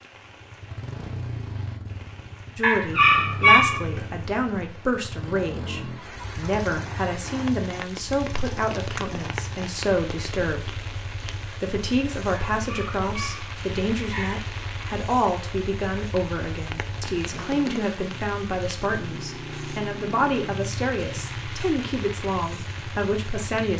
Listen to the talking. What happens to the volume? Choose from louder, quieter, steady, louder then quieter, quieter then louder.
steady.